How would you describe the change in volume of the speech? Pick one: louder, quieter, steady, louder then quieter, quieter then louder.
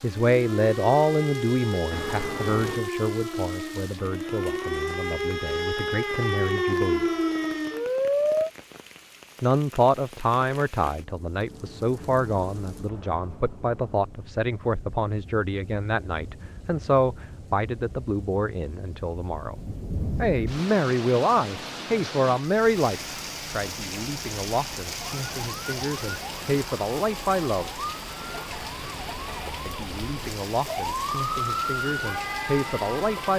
steady.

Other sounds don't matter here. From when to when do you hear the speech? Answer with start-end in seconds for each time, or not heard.
0.0-7.0, 9.4-19.6, 20.2-27.7, 29.6-33.3.